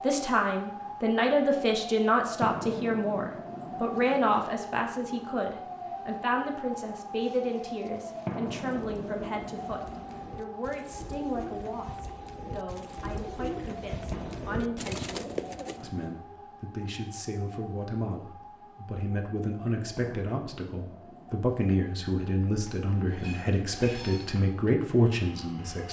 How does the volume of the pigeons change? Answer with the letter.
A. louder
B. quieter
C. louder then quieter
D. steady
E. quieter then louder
A.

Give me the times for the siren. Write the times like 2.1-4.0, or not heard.
0.0-25.6.